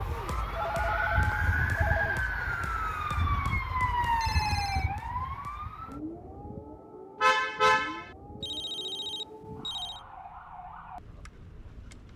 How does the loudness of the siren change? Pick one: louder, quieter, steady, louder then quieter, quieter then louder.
quieter.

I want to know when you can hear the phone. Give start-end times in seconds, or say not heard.
0.6-2.2, 4.2-4.9, 8.4-10.0.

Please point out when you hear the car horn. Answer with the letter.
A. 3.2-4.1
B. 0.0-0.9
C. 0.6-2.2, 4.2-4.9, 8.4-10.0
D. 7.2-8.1
D.